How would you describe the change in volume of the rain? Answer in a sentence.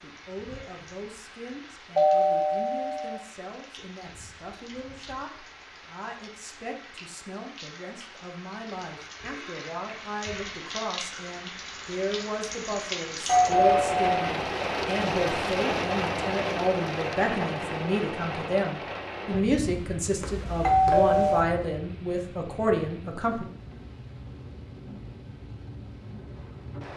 The loudness of the rain goes up, then down.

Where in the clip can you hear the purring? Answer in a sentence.
You can't hear the purring here.